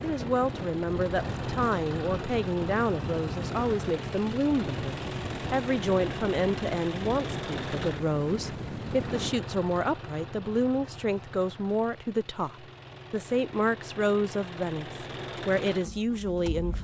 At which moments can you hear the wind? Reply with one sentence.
You can hear the wind from 0.0 to 9.3 s.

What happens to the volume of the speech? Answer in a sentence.
The loudness of the speech stays about the same.